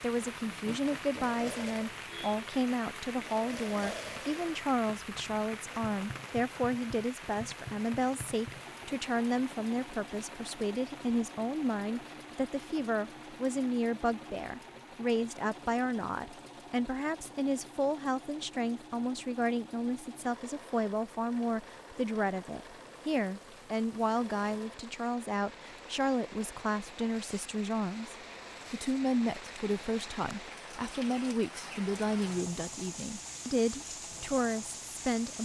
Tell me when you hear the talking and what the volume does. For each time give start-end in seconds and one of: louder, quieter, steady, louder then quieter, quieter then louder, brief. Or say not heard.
0.0-35.4 steady.